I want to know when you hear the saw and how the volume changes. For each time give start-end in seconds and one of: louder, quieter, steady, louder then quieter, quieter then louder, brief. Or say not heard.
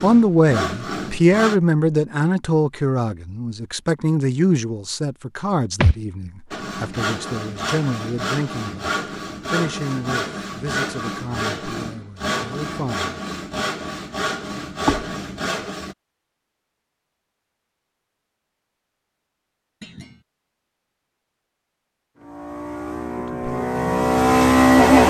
0.0-1.6 brief
6.5-15.9 steady.